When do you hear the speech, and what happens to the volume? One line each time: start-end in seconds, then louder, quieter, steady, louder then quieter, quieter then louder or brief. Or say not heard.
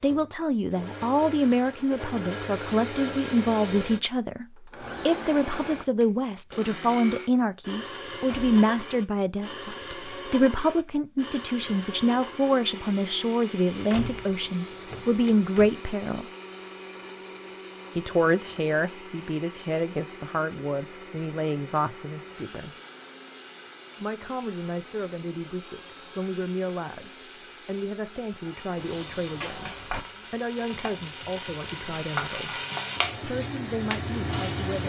0.0-16.2 steady
17.9-22.7 steady
23.9-32.6 steady
33.2-34.8 brief.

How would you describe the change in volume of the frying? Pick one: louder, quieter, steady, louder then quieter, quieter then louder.
louder.